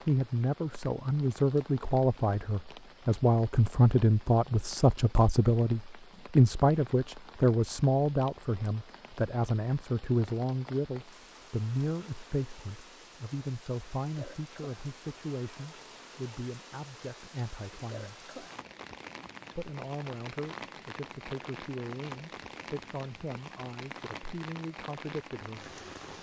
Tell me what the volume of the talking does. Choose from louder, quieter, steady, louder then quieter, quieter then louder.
quieter.